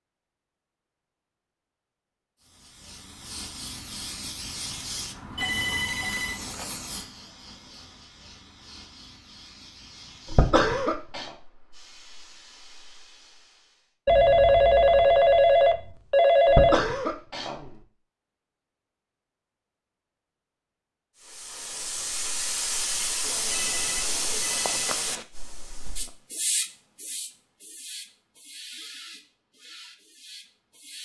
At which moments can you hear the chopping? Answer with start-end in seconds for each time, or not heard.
not heard.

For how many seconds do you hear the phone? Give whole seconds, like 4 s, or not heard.
6 s.